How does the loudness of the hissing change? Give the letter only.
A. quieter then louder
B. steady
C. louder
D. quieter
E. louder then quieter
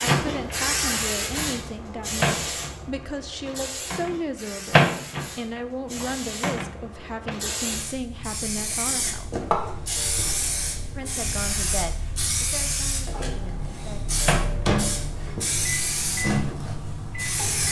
A.